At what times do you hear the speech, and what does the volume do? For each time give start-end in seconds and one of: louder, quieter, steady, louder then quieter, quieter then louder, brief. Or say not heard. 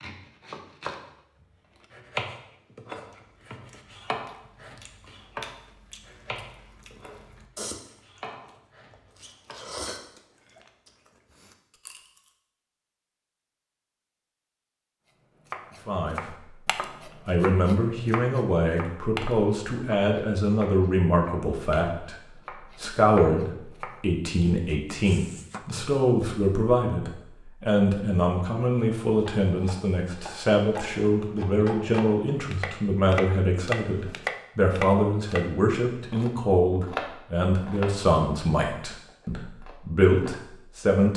15.8-16.5 brief
17.2-41.1 steady.